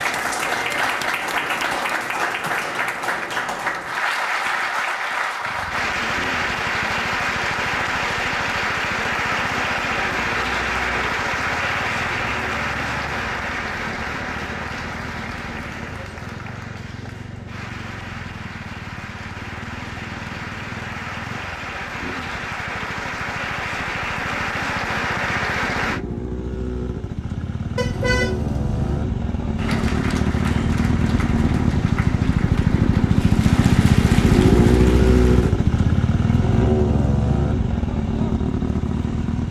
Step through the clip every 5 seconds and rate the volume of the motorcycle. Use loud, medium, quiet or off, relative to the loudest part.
off, quiet, quiet, quiet, quiet, medium, loud, loud.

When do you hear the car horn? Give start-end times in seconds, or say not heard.
27.8-28.9.